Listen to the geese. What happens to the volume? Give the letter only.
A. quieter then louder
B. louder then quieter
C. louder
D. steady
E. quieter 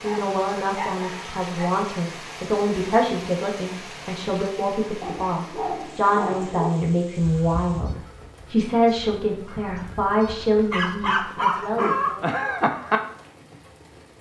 A.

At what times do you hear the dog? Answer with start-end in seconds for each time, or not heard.
0.0-1.7, 5.0-6.8, 10.2-12.2.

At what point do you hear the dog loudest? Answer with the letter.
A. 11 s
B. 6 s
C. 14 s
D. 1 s
A.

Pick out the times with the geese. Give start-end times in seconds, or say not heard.
7.2-13.0.